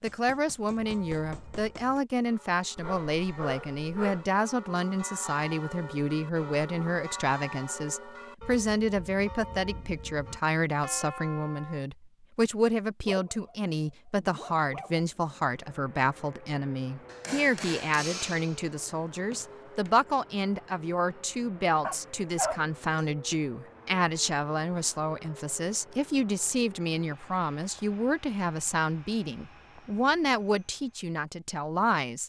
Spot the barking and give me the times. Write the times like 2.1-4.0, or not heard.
2.8-4.2, 13.0-15.1, 21.8-23.1.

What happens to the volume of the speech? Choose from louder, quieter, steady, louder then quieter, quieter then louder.
steady.